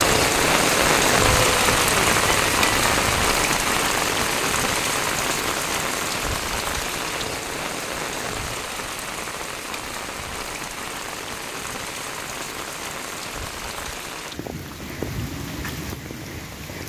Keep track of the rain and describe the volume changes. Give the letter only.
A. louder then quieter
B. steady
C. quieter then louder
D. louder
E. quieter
E.